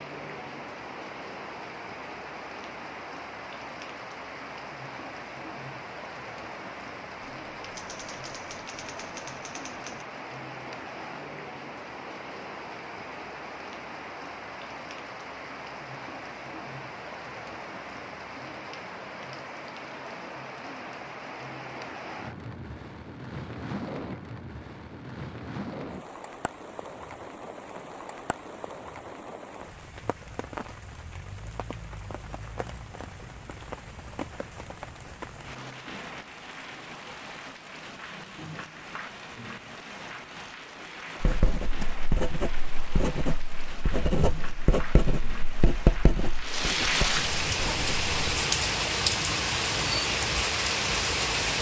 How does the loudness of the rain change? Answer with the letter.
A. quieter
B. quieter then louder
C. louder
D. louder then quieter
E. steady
C.